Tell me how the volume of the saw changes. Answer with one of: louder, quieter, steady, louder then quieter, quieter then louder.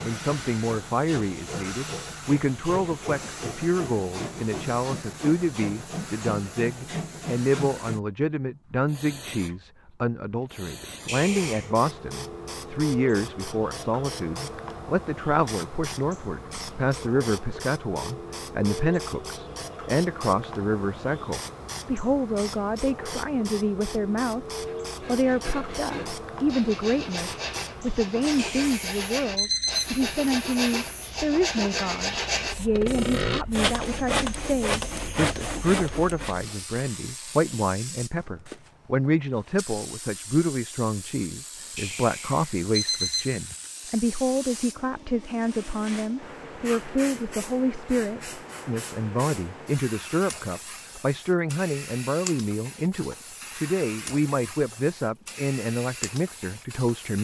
louder.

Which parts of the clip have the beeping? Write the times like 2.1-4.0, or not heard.
11.1-11.7, 28.4-30.4, 41.8-43.7.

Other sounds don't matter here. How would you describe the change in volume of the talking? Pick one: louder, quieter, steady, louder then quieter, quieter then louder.
steady.